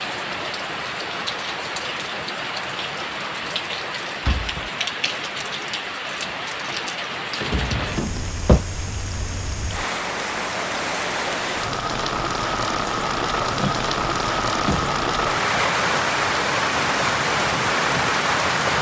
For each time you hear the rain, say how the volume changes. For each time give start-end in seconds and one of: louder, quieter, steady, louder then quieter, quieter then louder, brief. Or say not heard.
0.0-18.7 louder.